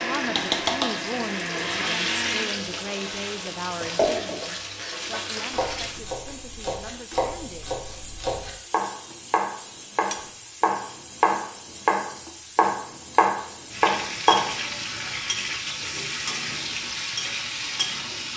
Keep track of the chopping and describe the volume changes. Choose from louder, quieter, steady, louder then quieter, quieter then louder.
louder.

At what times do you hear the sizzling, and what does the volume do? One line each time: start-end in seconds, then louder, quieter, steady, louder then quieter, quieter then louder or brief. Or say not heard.
0.0-18.3 quieter then louder.